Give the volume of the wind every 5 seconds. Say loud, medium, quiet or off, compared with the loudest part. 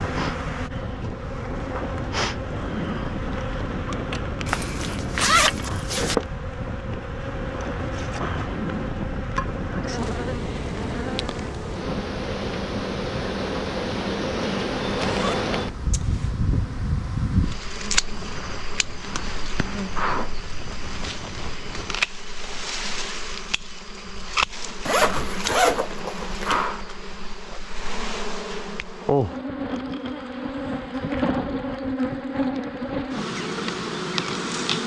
loud, loud, loud, medium, medium, off, off.